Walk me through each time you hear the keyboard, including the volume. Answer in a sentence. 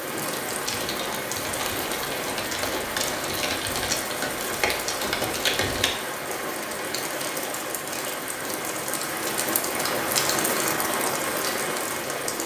You can hear the keyboard from 0.6 to 6.0 s, getting louder.